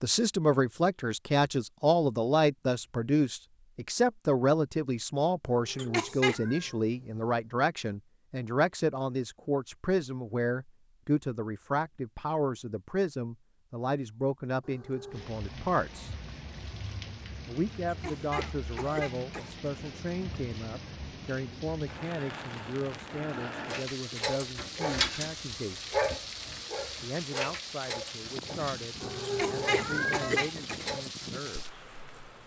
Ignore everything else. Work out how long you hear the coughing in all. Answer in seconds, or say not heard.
4 s.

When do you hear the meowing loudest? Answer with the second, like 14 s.
30 s.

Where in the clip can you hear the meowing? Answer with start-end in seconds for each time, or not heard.
5.5-7.2, 14.6-15.3, 29.0-30.5.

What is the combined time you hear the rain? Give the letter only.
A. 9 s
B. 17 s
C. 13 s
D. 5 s
B.